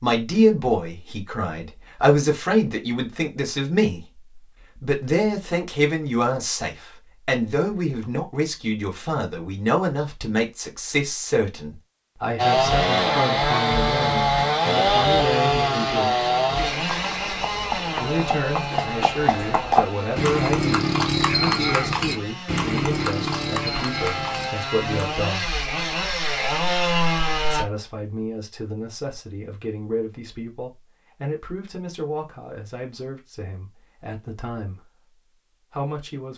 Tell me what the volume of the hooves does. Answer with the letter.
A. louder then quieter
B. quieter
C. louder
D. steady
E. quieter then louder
A.